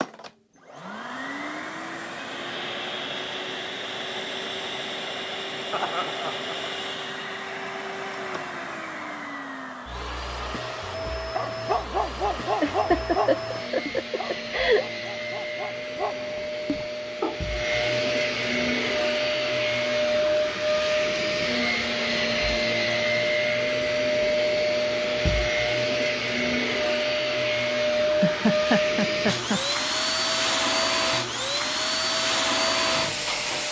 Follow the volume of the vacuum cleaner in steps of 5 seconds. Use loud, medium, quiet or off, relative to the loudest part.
medium, medium, medium, loud, loud, loud, loud.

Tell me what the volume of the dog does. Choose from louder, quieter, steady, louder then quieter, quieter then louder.
quieter then louder.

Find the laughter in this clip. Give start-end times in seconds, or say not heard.
5.7-6.5, 12.6-14.8, 28.2-29.6.